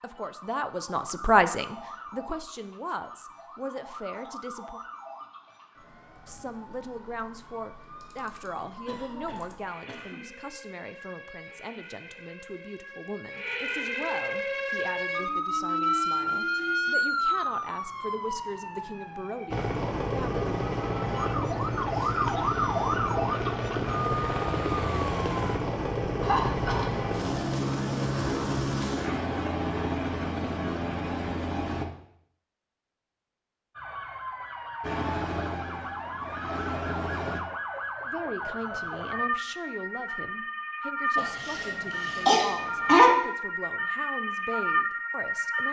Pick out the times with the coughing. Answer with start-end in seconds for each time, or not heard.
8.7-10.2, 26.2-27.1, 41.1-43.1.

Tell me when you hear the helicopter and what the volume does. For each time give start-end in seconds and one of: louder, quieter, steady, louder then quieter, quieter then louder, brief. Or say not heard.
19.5-31.9 steady
34.8-37.4 brief.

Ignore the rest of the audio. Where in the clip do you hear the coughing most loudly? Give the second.
43 s.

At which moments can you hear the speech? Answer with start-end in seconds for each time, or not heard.
0.0-4.8, 6.2-20.5, 38.0-45.6.